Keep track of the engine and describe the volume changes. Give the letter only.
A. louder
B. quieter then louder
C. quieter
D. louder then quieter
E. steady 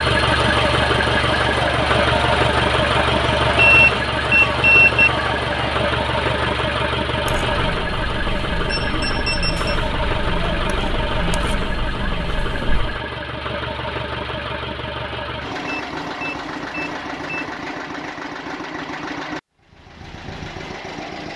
C.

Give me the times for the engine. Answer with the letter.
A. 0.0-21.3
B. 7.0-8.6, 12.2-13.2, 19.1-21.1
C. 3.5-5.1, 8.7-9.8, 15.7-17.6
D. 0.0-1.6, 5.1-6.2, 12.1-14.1
A.